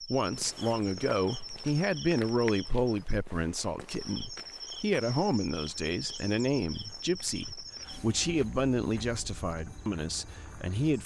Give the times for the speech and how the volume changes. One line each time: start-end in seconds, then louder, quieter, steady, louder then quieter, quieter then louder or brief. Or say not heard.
0.0-10.9 steady.